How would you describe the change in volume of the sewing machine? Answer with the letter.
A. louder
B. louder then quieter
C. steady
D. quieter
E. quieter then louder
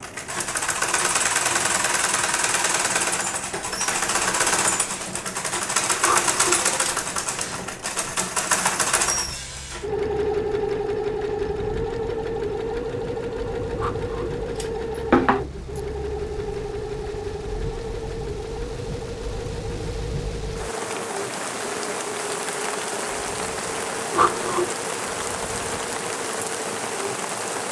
D.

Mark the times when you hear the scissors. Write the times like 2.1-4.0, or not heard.
6.0-7.1, 13.8-15.4, 24.1-24.8.